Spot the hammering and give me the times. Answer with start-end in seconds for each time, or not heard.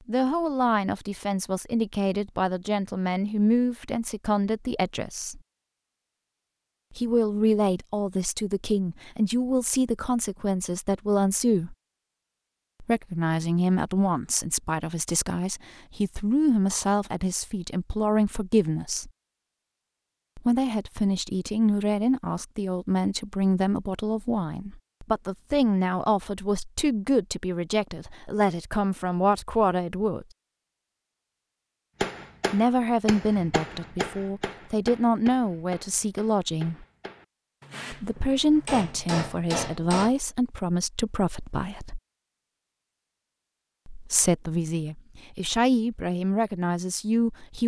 32.0-40.1.